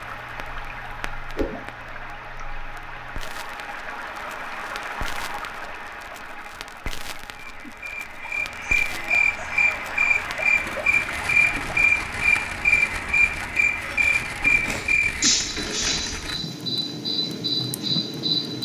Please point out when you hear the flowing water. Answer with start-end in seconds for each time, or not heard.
0.0-14.8.